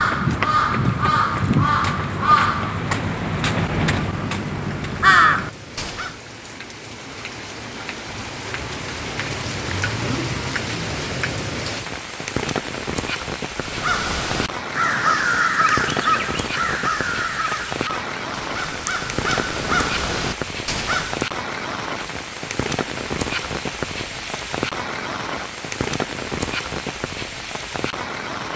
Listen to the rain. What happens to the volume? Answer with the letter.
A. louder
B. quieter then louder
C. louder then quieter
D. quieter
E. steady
A.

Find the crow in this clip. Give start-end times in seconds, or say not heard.
0.0-6.2, 13.6-21.2.